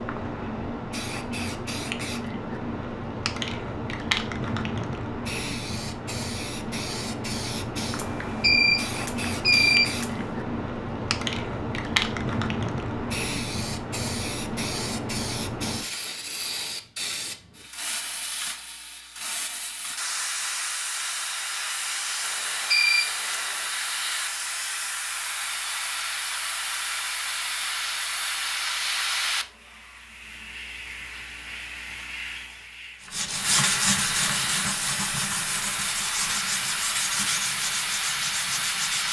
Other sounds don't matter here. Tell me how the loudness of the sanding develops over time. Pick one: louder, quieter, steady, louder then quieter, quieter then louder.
quieter.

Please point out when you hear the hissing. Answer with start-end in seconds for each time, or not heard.
0.0-39.0.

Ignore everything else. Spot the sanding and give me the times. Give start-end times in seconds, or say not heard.
33.0-39.0.